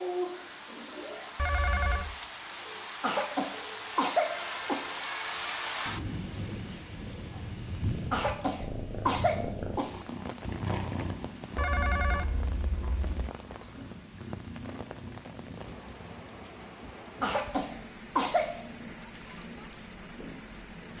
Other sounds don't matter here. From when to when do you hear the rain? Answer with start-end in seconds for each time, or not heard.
0.0-20.9.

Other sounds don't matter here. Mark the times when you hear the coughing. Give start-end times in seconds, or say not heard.
3.0-4.9, 8.1-9.9, 17.2-18.6.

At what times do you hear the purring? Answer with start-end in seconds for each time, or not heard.
0.0-20.9.